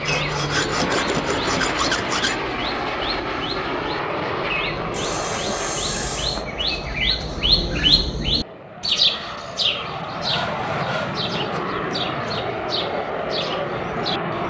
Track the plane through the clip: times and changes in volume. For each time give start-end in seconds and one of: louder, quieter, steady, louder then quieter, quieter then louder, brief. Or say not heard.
0.0-14.4 quieter then louder.